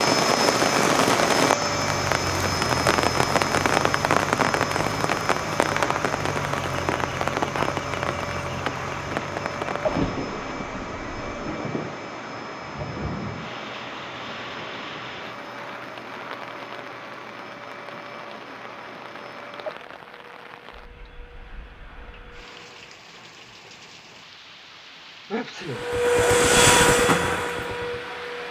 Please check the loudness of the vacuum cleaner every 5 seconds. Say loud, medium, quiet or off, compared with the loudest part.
medium, medium, quiet, quiet, quiet, loud.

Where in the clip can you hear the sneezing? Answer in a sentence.
The sneezing can be heard from 25.3 to 25.9 s.